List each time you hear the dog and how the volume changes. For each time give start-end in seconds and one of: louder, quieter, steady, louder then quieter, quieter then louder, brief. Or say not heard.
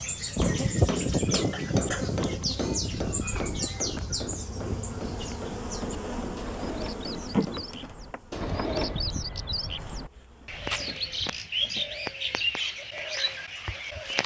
not heard.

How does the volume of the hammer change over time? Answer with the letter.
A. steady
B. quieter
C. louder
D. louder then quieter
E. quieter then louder
B.